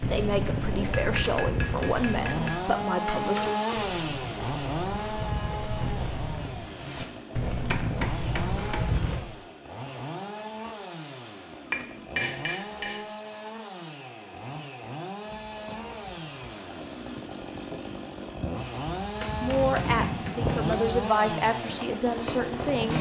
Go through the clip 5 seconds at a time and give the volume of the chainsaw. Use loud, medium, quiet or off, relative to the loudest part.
loud, medium, medium, medium, loud.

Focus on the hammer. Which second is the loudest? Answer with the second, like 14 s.
12 s.